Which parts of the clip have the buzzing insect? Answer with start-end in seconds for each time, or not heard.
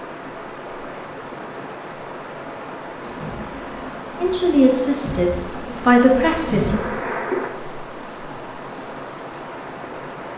3.0-7.5.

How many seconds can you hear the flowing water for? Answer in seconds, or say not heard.
10 s.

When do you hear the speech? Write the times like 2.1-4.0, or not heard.
4.2-6.8.